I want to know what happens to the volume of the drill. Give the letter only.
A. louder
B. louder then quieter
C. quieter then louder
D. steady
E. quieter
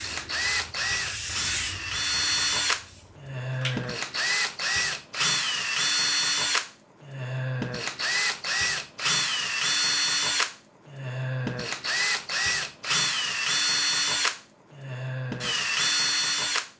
D.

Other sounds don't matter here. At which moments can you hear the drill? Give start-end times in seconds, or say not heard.
0.0-16.7.